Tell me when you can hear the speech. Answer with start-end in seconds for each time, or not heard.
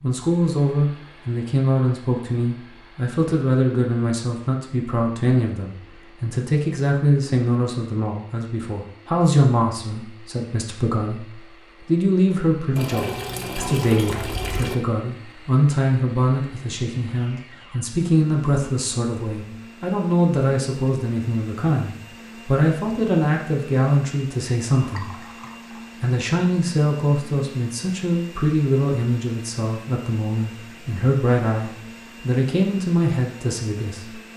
0.0-25.3, 26.0-34.1.